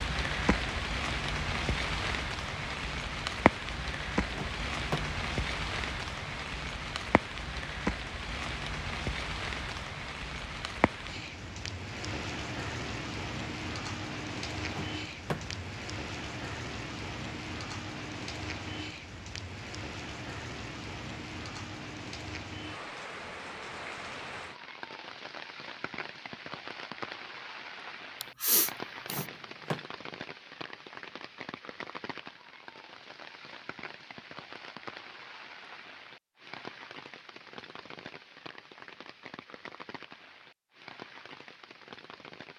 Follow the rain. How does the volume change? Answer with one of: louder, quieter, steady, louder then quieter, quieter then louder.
quieter.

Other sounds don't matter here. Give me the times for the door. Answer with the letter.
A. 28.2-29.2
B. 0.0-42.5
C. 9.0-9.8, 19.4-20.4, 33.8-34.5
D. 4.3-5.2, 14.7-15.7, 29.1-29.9
D.